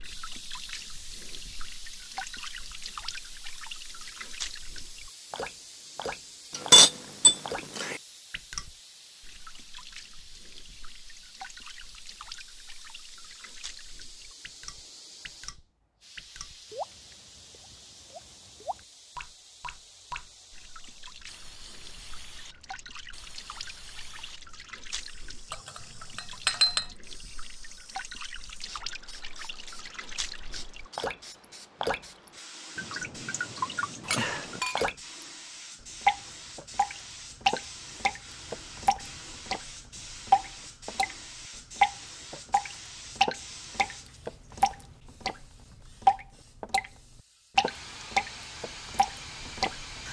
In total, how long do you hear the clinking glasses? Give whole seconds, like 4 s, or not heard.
4 s.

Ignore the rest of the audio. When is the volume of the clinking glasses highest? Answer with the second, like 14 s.
7 s.